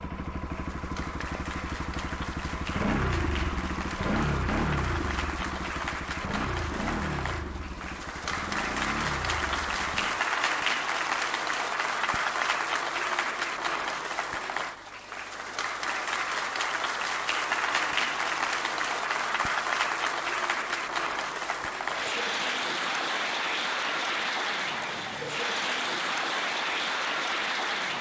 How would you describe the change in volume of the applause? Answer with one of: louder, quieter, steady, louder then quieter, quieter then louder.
louder.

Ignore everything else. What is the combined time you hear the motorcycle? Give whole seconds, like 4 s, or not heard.
10 s.